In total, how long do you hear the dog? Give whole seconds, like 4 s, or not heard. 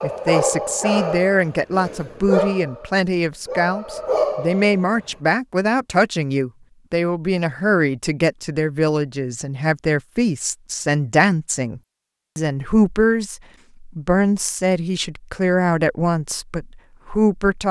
5 s.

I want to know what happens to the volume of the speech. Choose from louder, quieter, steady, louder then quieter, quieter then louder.
steady.